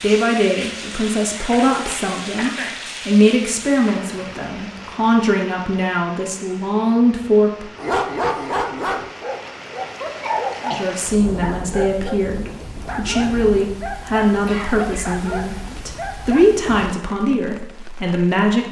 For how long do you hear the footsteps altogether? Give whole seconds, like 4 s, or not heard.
not heard.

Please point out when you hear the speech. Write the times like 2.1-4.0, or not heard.
0.0-7.7, 10.7-18.6.